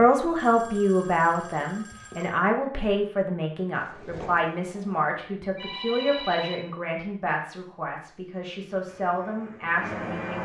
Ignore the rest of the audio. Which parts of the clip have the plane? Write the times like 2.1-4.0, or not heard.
3.7-5.0, 8.8-10.3.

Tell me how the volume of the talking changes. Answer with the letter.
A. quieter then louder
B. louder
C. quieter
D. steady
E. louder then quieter
C.